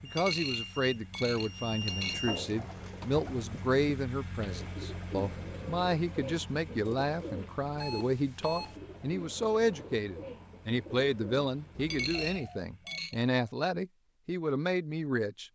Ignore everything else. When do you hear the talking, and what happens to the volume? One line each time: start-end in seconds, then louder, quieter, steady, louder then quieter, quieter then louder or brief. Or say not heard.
0.0-15.4 steady.